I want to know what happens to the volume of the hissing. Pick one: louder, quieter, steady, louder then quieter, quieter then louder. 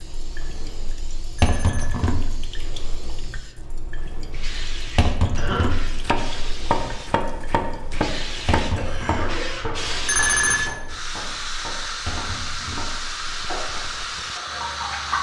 louder.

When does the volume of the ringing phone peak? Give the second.
10 s.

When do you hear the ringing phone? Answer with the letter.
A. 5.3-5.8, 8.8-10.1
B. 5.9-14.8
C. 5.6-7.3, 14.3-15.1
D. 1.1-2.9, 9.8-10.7
D.